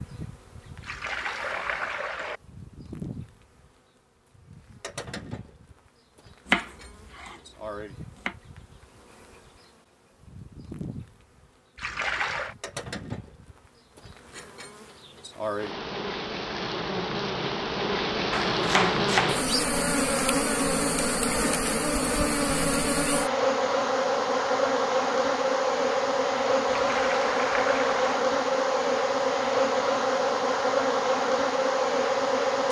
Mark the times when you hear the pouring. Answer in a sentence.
You can hear the pouring from 0.8 to 2.4 s, from 11.8 to 12.6 s and from 26.7 to 28.2 s.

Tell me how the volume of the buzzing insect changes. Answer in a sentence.
The volume of the buzzing insect goes up.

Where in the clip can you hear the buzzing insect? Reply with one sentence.
The buzzing insect can be heard from 0.0 to 32.6 s.